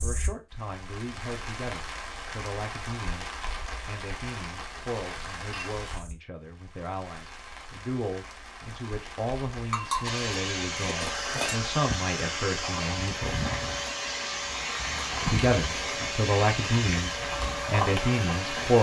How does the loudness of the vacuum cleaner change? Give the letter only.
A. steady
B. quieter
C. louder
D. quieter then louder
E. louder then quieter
A.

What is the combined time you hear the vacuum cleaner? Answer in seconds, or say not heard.
9 s.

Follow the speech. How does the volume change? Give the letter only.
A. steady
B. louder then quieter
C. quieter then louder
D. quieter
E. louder
E.